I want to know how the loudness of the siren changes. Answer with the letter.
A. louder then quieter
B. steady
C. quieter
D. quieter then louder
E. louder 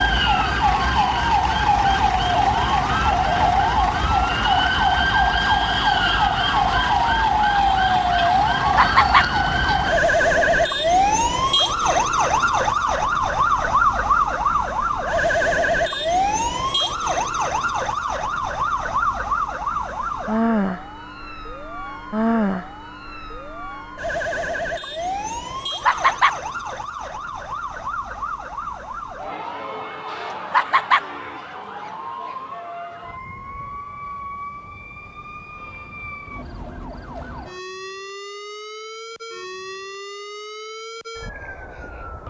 C.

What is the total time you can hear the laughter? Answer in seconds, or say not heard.
2 s.